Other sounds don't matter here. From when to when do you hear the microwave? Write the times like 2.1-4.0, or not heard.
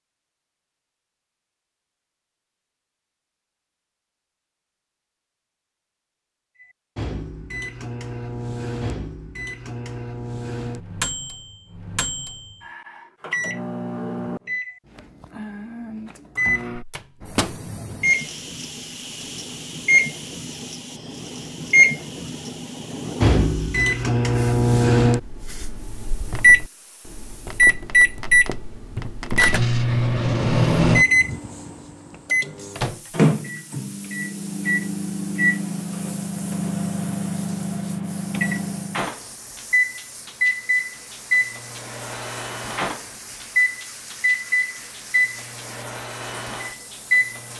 6.6-47.5.